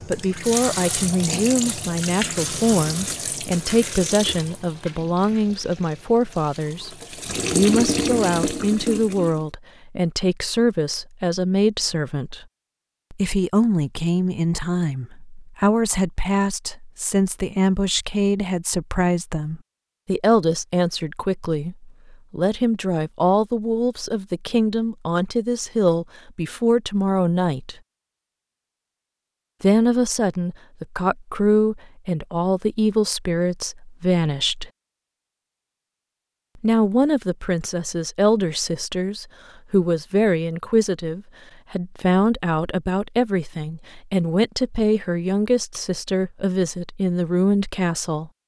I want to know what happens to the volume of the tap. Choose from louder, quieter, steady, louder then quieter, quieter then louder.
quieter then louder.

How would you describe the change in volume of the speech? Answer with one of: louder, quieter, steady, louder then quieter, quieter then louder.
steady.